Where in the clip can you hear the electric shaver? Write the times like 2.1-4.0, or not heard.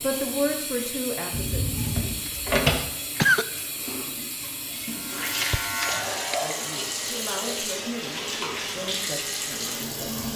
4.8-6.8.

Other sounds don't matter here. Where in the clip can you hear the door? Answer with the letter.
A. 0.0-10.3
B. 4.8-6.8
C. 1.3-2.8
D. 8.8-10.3
C.